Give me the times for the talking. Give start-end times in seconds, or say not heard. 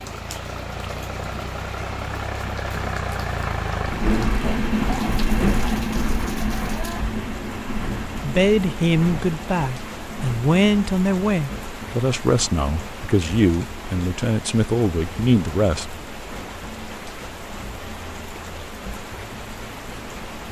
8.2-16.0.